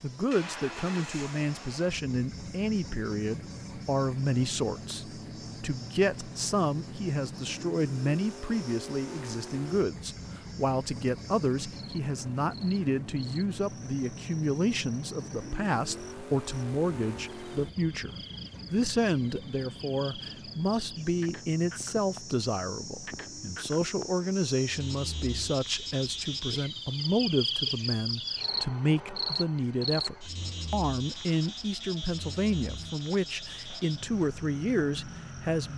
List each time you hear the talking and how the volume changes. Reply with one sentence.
You can hear the talking from 0.0 to 18.1 s, at a steady volume; and from 18.7 to 35.7 s, at a steady volume.